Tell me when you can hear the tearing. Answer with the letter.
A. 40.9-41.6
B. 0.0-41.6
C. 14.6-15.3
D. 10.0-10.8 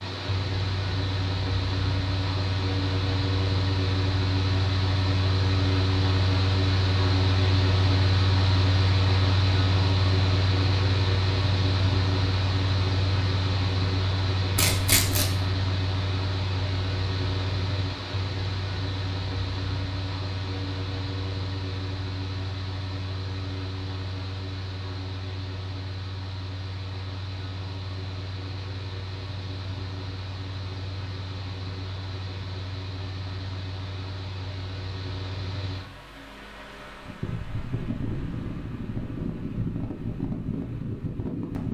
C.